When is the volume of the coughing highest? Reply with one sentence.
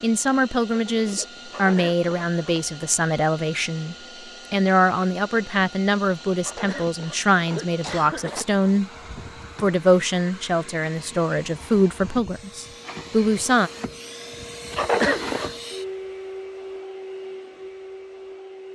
The loudest moment of the coughing is at 15 seconds.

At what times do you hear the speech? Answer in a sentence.
You can hear the speech from 0.0 to 8.9 s and from 9.6 to 13.7 s.